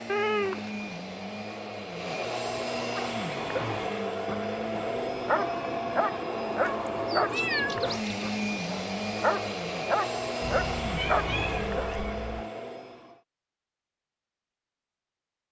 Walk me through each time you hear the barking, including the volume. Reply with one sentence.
You can hear the barking from 3.0 to 12.4 s, getting louder.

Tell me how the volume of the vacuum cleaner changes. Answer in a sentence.
The volume of the vacuum cleaner stays about the same.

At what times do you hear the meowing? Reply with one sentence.
The meowing can be heard from 0.1 to 0.8 s, from 6.6 to 8.1 s and from 10.4 to 12.4 s.